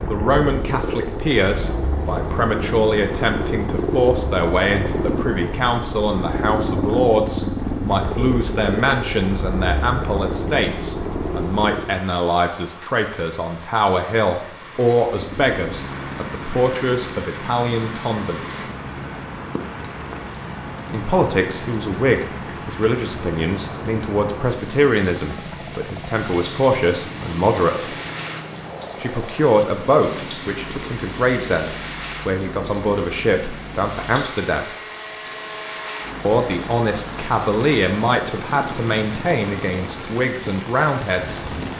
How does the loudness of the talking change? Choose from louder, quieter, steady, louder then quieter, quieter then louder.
steady.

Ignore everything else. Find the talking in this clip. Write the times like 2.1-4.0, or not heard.
0.0-18.6, 20.9-27.9, 29.0-34.6, 36.2-41.5.